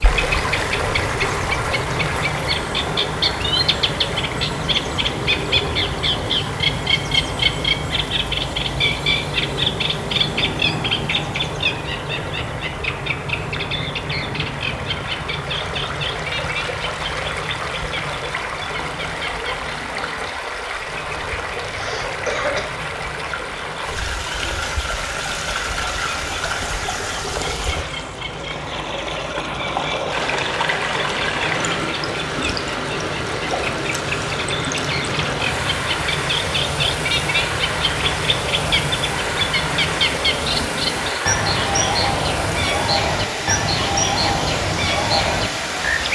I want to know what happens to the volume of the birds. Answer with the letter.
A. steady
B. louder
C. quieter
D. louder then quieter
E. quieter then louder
E.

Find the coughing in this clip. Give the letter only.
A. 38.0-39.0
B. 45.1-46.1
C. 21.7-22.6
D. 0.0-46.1
C.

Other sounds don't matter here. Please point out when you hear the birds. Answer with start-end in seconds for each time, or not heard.
0.0-46.1.